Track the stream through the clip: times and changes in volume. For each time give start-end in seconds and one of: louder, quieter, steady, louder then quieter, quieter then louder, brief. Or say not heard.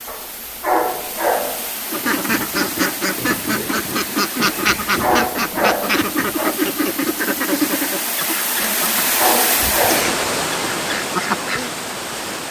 0.0-12.4 louder.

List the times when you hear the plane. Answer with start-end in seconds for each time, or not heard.
not heard.